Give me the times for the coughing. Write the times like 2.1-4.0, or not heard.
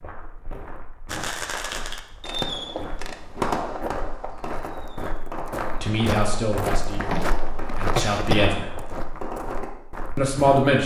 6.9-8.5.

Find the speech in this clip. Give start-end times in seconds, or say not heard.
5.7-8.7, 10.2-10.8.